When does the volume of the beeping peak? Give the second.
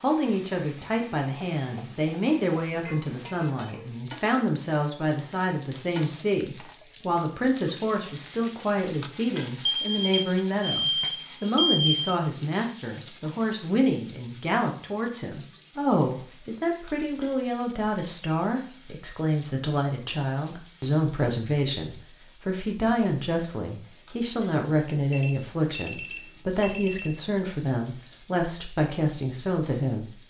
12 s.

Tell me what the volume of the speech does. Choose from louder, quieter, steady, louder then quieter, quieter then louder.
steady.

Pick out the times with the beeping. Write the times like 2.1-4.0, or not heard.
9.7-12.1, 25.1-27.1.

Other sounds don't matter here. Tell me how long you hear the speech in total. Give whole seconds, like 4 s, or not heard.
30 s.